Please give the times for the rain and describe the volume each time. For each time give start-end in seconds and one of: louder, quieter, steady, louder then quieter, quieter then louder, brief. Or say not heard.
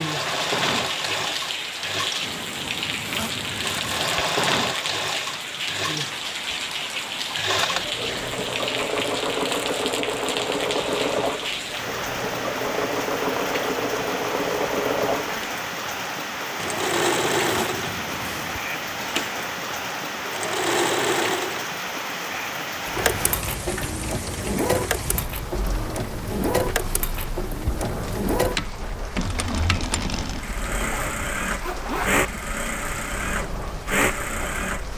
0.0-34.9 quieter.